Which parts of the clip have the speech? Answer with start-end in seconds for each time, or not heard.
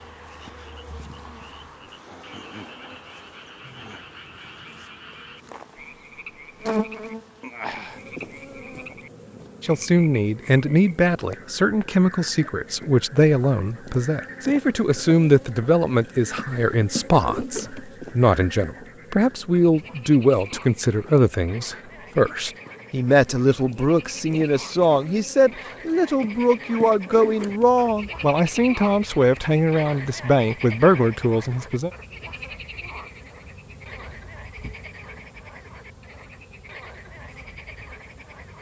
9.6-31.9.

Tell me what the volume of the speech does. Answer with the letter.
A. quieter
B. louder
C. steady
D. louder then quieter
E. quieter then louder
C.